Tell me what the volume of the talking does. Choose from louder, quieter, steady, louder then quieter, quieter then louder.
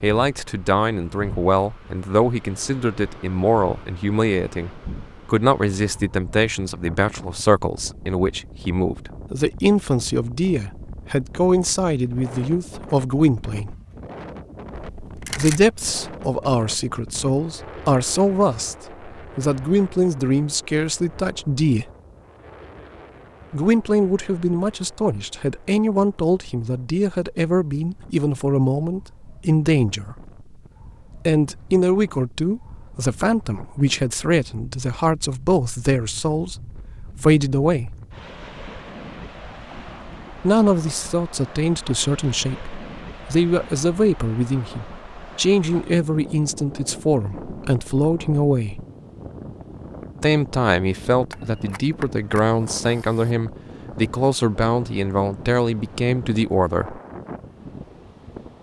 steady.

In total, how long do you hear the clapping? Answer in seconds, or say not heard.
not heard.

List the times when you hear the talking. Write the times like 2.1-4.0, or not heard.
0.0-13.8, 15.3-21.9, 23.5-30.3, 31.2-38.0, 40.4-48.9, 50.2-57.0.